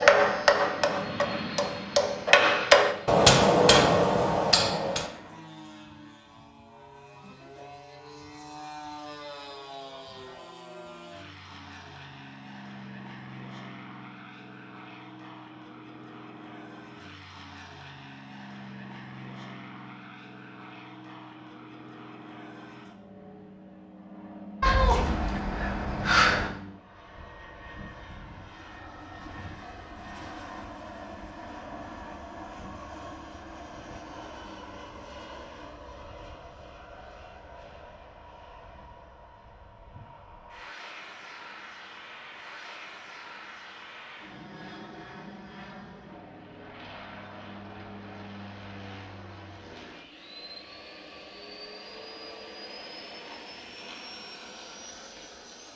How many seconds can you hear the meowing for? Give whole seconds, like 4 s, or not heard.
2 s.